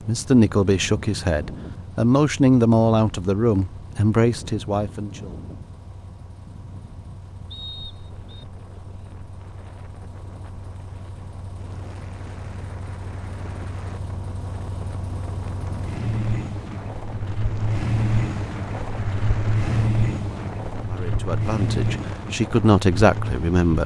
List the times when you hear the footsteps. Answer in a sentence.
The footsteps can't be heard in this clip.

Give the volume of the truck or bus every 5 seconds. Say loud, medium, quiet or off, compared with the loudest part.
quiet, quiet, quiet, loud, loud.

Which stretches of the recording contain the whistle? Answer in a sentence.
You can hear the whistle from 7.5 to 8.4 s.